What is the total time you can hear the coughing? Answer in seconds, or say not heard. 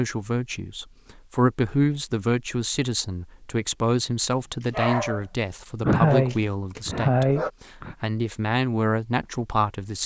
2 s.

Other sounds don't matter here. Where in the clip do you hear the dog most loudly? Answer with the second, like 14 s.
5 s.